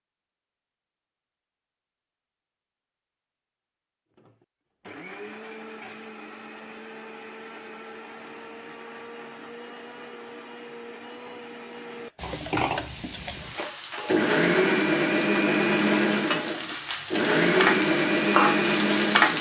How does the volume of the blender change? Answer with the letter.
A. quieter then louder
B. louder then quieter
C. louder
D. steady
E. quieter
C.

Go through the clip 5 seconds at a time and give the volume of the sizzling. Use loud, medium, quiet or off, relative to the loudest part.
off, off, quiet, loud.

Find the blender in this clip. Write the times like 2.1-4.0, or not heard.
4.2-19.3.